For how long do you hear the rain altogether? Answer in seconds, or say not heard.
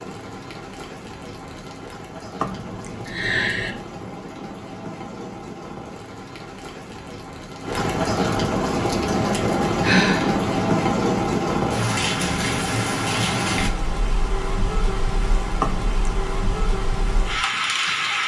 18 s.